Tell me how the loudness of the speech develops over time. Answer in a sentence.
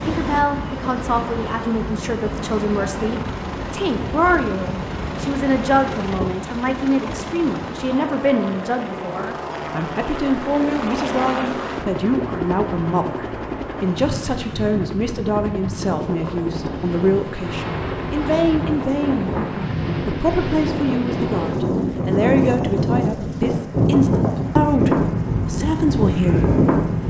The volume of the speech stays about the same.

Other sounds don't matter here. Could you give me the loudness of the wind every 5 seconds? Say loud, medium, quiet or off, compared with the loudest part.
quiet, quiet, quiet, medium, loud, loud.